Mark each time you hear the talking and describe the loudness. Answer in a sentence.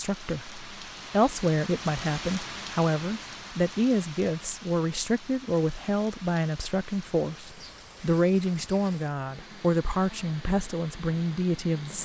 The talking can be heard from 0.0 to 12.0 s, at a steady volume.